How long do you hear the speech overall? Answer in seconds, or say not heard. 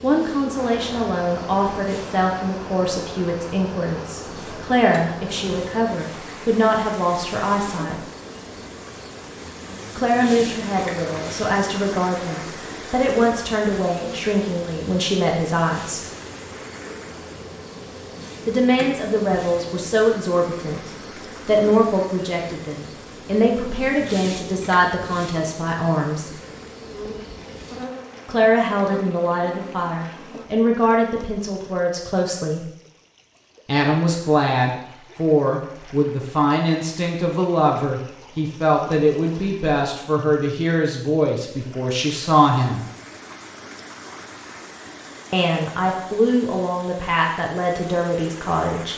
39 s.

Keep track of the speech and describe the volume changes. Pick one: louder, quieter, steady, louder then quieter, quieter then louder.
steady.